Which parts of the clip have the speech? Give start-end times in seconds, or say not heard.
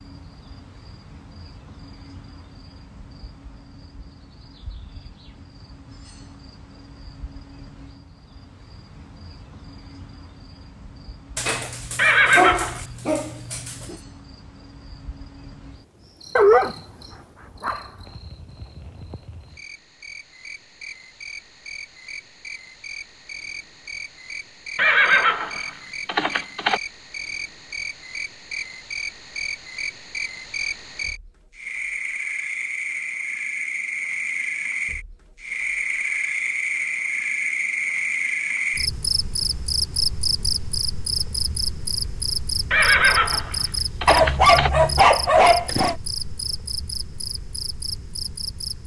not heard.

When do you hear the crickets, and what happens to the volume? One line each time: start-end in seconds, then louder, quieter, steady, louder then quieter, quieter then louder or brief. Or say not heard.
0.0-48.8 louder.